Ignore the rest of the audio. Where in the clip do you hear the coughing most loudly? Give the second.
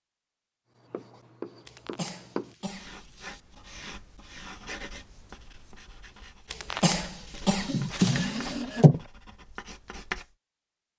7 s.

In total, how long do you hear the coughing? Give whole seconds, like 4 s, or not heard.
3 s.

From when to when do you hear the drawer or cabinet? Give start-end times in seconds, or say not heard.
7.7-9.0.